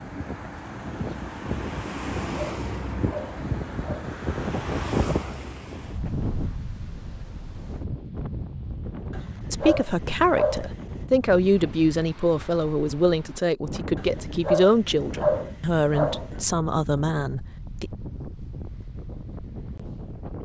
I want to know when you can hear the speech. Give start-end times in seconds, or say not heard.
9.5-17.9.